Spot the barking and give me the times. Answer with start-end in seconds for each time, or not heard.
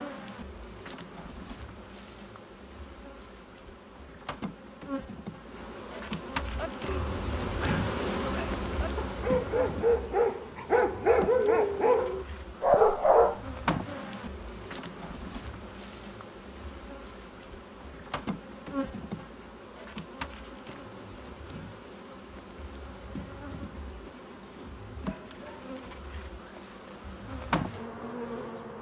6.3-13.4.